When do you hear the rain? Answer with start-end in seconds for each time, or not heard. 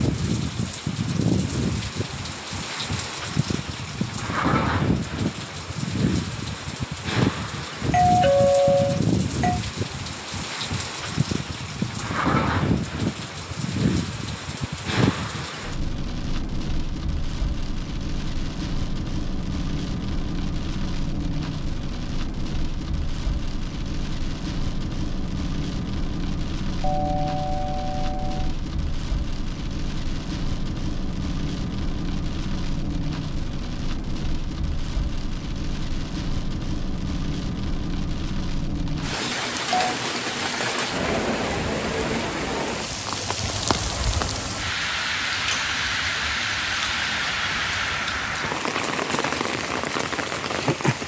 0.0-51.0.